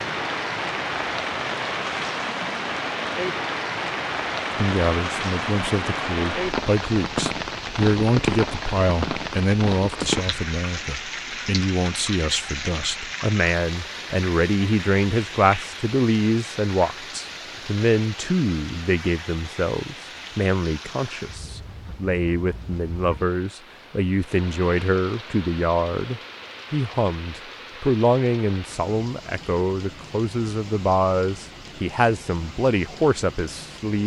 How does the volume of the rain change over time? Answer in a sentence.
The volume of the rain goes down.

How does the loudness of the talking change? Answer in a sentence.
The volume of the talking stays about the same.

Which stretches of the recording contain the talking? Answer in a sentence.
You can hear the talking from 4.5 to 34.0 s.